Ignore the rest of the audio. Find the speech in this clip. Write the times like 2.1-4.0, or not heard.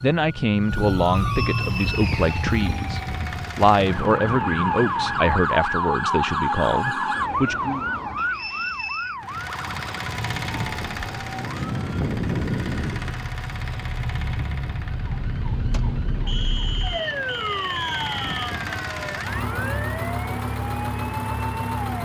0.0-7.9.